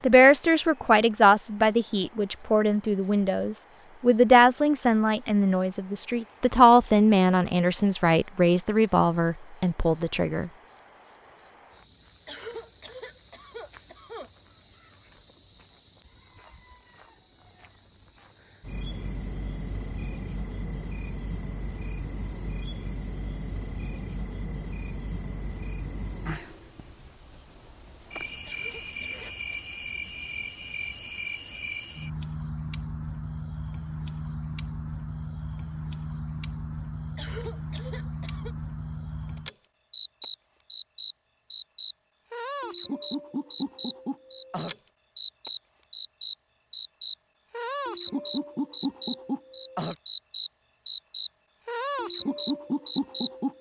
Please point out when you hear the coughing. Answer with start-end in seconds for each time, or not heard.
12.2-14.3, 28.4-29.6, 37.1-38.5.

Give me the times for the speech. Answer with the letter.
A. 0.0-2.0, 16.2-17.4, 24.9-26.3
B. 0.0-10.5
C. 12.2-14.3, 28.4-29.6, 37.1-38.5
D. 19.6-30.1
B.